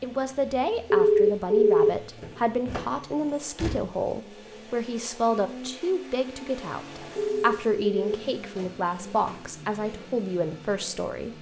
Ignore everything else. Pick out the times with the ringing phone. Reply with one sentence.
The ringing phone can be heard from 0.9 to 2.4 s and from 7.2 to 8.2 s.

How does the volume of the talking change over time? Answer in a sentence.
The volume of the talking stays about the same.